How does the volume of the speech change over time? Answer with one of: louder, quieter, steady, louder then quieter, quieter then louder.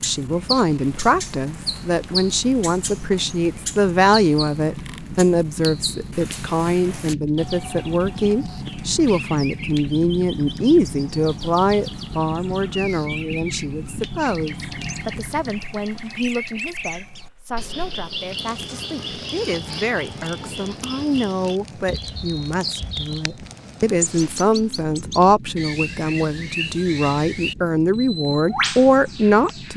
quieter then louder.